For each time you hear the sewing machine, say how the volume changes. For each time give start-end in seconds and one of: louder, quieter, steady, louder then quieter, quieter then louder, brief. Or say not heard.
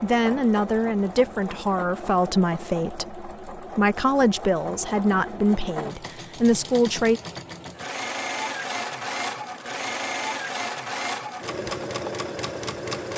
0.0-13.1 louder.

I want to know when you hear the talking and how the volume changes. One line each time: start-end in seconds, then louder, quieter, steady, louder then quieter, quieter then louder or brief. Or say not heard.
0.0-7.2 steady.